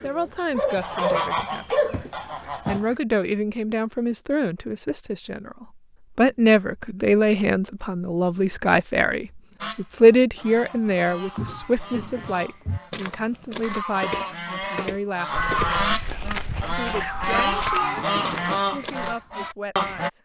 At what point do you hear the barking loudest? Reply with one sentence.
The volume of the barking peaks at 2 seconds.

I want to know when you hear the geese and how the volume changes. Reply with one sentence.
You can hear the geese briefly from 0.0 to 3.0 s; and from 9.6 to 20.1 s, getting louder.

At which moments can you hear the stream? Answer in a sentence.
You can't hear the stream here.